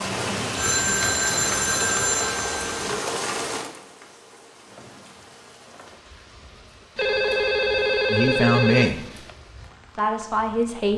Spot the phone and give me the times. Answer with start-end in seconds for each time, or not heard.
0.6-3.0, 7.0-9.3.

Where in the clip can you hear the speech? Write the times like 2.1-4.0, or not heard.
8.1-9.0, 9.9-10.9.